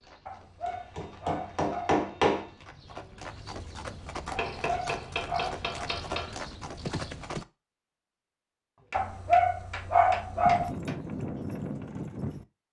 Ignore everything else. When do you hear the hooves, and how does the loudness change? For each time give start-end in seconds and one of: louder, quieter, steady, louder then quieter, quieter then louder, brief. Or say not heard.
0.0-7.5 louder
10.4-12.4 brief.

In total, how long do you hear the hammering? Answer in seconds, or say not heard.
6 s.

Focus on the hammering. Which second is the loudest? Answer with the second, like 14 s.
2 s.